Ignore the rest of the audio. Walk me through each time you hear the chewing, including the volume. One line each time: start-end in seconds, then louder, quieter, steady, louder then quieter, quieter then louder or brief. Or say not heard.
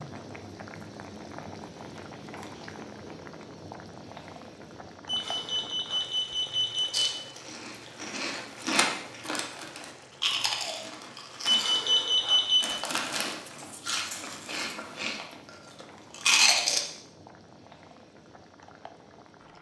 6.9-16.8 quieter then louder.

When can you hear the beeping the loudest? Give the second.
12 s.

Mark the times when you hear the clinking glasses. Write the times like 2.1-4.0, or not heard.
not heard.